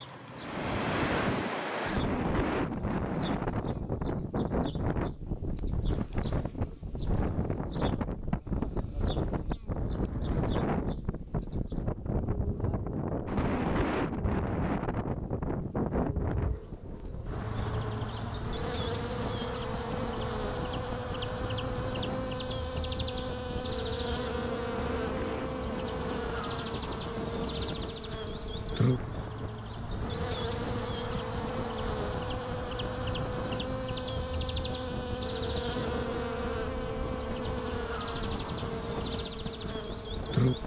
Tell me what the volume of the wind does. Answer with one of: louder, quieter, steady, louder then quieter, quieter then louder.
quieter.